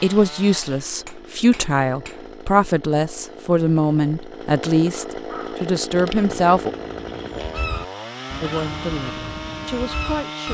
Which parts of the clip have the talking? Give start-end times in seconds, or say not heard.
0.0-6.7, 8.4-10.4.